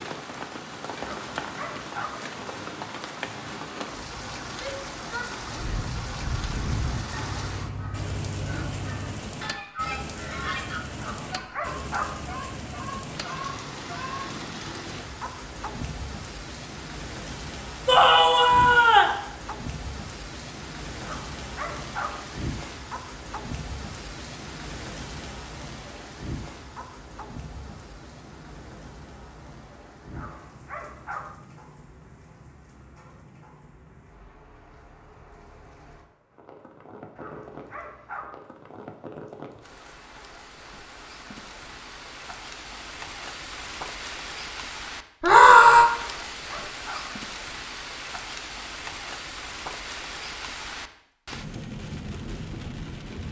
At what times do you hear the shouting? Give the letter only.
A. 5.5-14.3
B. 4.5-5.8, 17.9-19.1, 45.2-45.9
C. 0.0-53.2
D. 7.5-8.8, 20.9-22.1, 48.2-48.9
B.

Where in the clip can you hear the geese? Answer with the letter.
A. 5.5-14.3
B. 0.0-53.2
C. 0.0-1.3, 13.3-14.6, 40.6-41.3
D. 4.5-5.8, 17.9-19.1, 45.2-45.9
A.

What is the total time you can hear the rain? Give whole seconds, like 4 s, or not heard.
53 s.